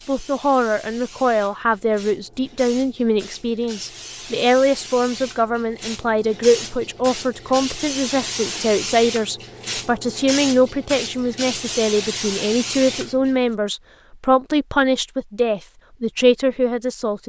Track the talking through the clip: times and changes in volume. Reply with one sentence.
The talking can be heard from 0.1 to 17.2 s, at a steady volume.